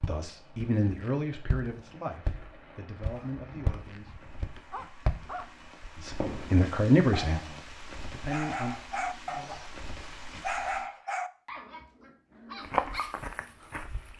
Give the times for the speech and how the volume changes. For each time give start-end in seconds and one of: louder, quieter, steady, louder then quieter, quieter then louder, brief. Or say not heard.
0.1-4.1 quieter then louder
6.0-8.8 brief.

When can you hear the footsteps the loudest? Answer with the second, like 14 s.
13 s.